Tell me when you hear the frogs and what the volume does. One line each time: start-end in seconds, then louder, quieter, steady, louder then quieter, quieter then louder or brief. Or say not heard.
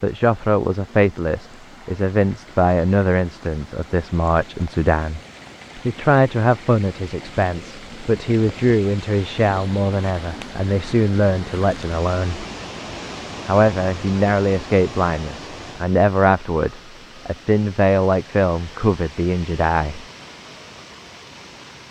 not heard.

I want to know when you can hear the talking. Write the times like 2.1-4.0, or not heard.
0.0-12.4, 13.4-20.1.